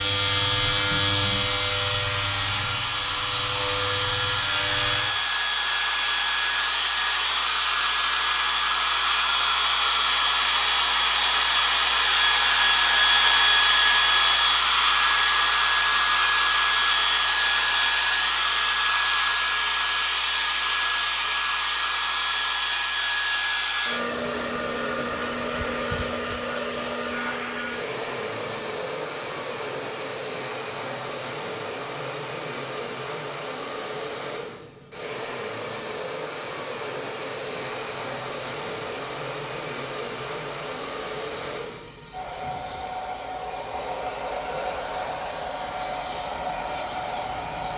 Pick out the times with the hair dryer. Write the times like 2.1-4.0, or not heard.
0.0-47.7.